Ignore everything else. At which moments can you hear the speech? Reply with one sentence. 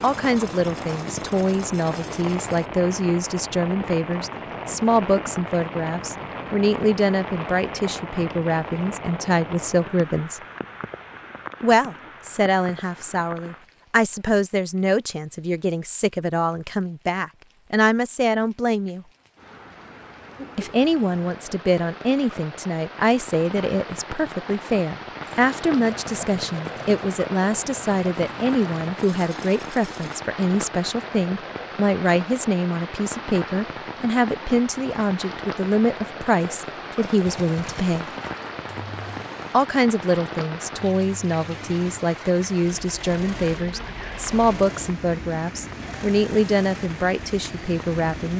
The speech can be heard from 0.0 to 10.4 s, from 11.6 to 19.1 s, from 20.6 to 38.0 s and from 39.5 to 48.3 s.